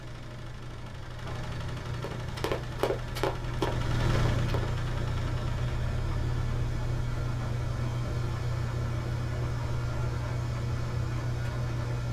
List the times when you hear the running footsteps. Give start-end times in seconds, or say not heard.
2.0-4.7.